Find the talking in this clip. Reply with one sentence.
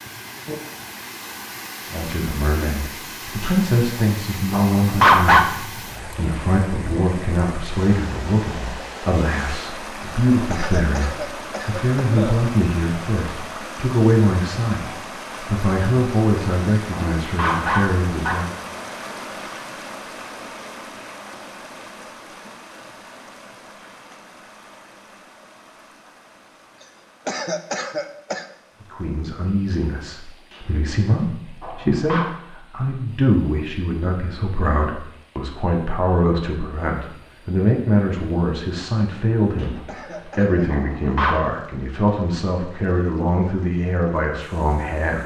You can hear the talking from 1.9 to 18.6 s and from 28.9 to 45.2 s.